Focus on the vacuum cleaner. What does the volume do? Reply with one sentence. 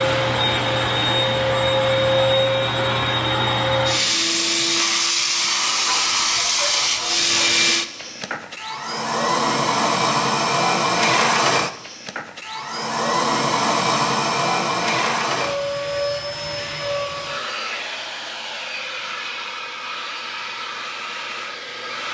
The volume of the vacuum cleaner goes down.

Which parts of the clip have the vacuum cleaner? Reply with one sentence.
The vacuum cleaner can be heard from 0.0 to 22.1 s.